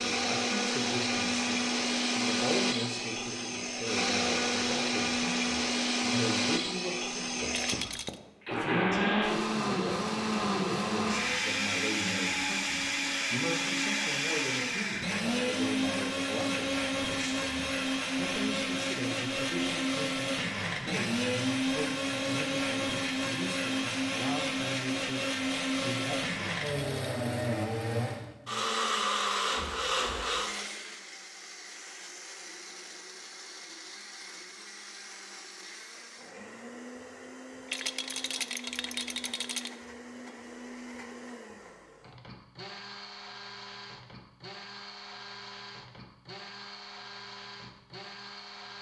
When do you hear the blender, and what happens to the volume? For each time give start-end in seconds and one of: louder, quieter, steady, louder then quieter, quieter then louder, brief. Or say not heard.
0.0-48.7 quieter.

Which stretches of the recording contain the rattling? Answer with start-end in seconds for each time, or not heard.
7.6-8.2, 26.4-26.9, 37.6-39.7.